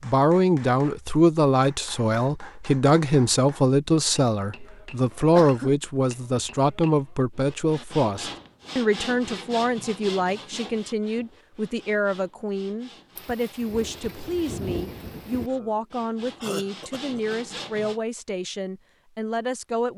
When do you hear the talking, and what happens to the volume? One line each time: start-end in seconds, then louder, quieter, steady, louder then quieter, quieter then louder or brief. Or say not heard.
0.0-19.9 quieter.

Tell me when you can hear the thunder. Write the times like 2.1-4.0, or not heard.
13.2-15.5.